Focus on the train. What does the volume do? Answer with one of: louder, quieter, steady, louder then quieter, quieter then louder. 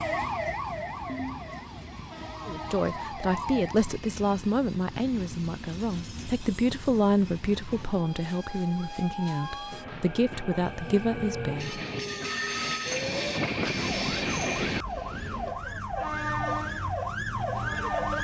louder.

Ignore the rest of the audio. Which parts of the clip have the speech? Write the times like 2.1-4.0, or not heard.
2.5-11.8.